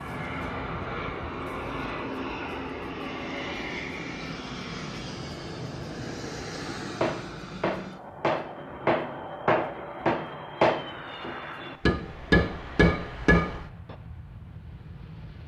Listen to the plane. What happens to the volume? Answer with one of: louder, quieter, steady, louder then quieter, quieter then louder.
quieter.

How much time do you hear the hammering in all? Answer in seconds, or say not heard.
7 s.